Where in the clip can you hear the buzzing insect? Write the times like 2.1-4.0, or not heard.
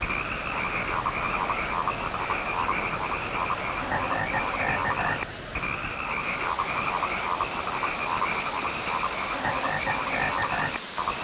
not heard.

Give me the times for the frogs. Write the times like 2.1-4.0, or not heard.
0.0-11.1.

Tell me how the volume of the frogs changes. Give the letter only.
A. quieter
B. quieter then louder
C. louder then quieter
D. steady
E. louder
D.